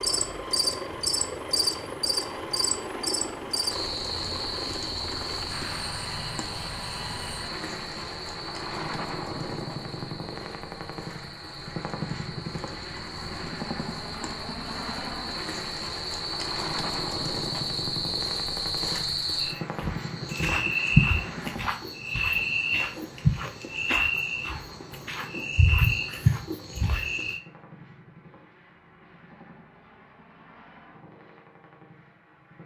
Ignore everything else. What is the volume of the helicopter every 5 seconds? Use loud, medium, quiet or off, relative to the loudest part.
loud, loud, loud, loud, medium, quiet, quiet.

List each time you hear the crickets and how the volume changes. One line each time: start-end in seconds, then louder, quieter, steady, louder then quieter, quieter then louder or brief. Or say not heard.
0.0-27.4 quieter then louder.